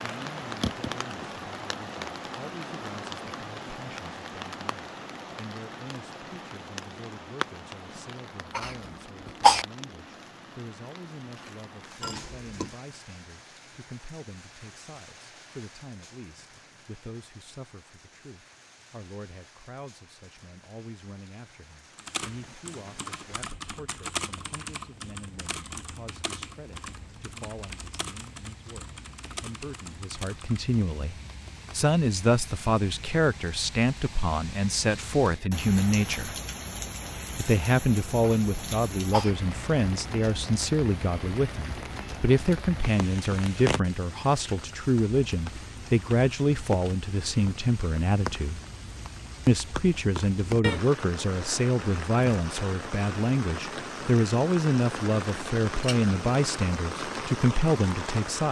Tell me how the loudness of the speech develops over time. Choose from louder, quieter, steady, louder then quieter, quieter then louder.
louder.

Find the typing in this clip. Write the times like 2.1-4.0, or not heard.
21.9-30.8.